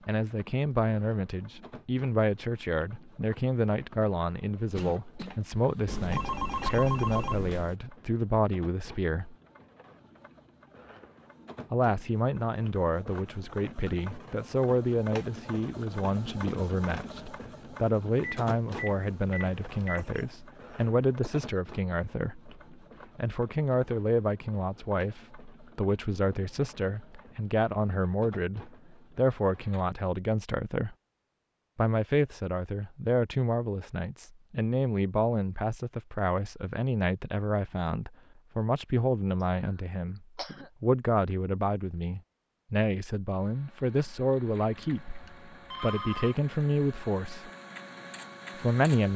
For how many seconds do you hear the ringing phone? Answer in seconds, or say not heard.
5 s.